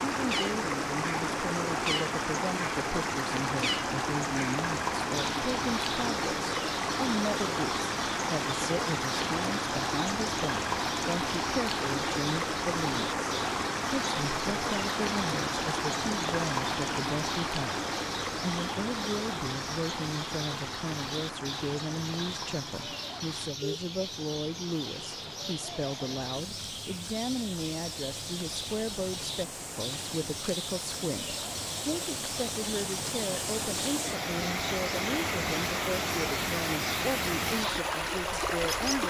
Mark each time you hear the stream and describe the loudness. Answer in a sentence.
You can hear the stream from 0.0 to 39.0 s, getting quieter then louder.